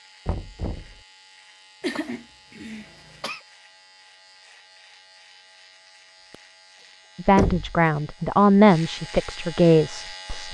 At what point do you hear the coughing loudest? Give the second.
2 s.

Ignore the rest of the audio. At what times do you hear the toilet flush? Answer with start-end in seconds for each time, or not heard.
not heard.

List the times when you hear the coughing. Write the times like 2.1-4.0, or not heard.
1.8-3.5, 6.3-6.8.